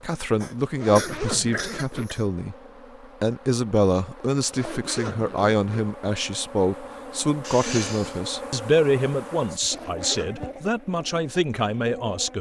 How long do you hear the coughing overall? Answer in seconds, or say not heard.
3 s.